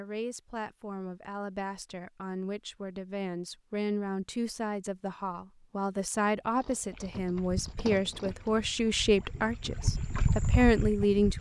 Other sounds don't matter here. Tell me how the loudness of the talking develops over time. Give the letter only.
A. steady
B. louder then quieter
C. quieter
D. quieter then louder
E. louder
E.